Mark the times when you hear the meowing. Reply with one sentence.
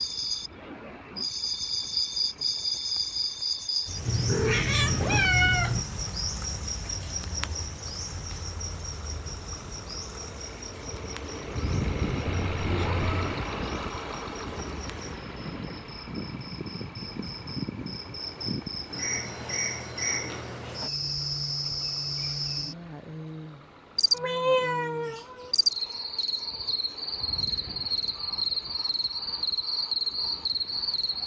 You can hear the meowing from 4.0 to 5.8 s, from 12.4 to 13.3 s and from 24.1 to 25.5 s.